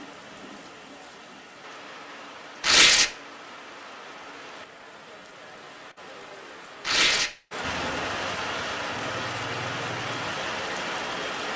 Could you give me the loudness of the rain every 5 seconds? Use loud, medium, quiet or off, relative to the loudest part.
quiet, loud, loud.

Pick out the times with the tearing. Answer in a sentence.
You can hear the tearing from 2.6 to 3.1 s and from 6.8 to 7.3 s.